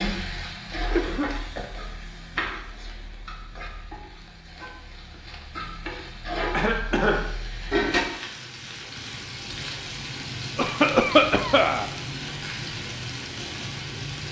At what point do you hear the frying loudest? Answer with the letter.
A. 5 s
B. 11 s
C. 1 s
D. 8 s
D.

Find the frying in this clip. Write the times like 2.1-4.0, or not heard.
0.0-14.2.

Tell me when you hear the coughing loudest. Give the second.
11 s.